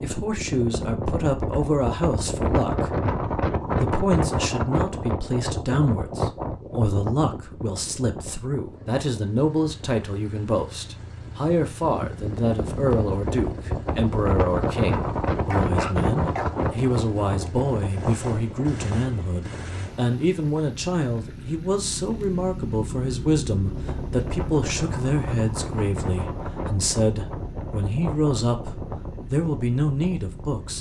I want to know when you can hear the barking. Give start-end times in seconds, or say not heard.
15.5-16.6.